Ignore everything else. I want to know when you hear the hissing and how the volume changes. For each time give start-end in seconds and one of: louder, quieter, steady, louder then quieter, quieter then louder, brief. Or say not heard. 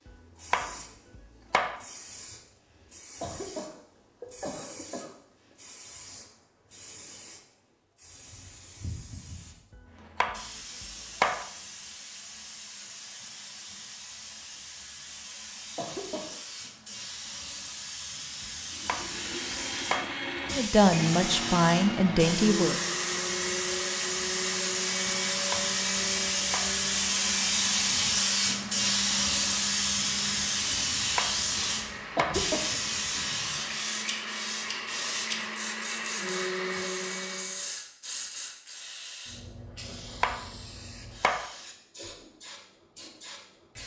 0.0-43.8 louder then quieter.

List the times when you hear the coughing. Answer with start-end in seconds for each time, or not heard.
3.2-5.2, 15.8-16.4, 32.1-32.8.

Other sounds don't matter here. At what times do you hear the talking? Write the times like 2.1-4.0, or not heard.
20.5-22.8.